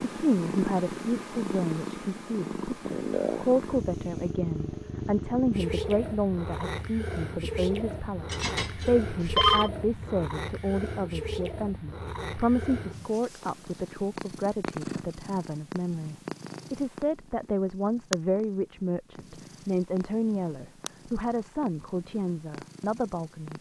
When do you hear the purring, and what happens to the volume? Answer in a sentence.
You can hear the purring from 0.0 to 23.5 s, getting quieter.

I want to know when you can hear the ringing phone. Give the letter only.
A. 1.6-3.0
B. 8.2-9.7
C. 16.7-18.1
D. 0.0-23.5
B.